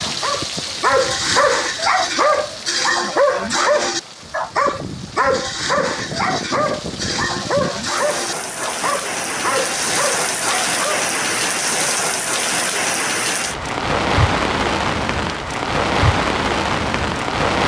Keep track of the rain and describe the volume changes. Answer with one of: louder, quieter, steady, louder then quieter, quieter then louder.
louder.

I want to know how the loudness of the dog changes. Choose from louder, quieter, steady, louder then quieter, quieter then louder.
quieter.